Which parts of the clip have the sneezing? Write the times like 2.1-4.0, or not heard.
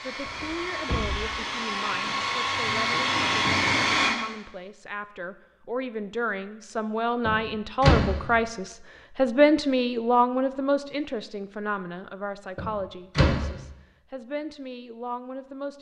not heard.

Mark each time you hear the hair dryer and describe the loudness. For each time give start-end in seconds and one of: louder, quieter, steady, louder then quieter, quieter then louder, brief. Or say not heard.
0.0-4.2 louder.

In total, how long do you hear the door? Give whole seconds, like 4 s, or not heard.
3 s.